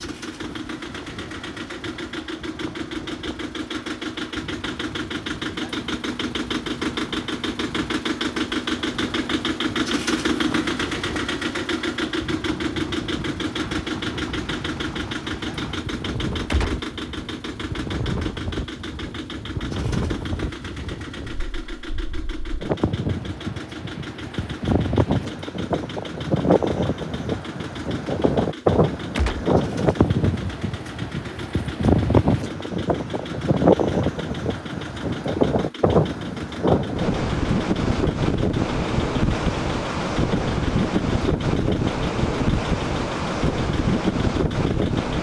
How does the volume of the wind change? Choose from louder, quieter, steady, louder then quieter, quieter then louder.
louder.